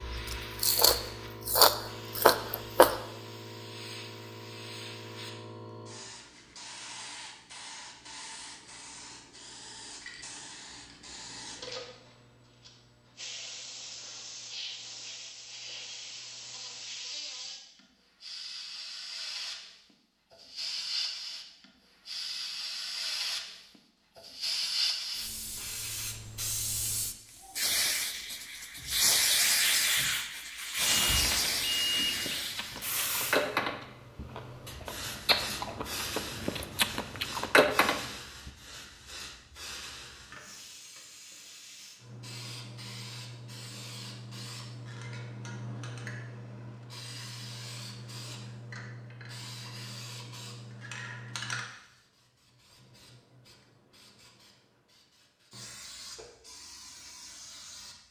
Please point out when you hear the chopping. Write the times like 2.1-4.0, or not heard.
not heard.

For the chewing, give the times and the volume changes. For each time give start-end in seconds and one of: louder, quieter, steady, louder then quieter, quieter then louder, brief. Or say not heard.
0.0-3.0 brief
32.1-38.5 quieter then louder.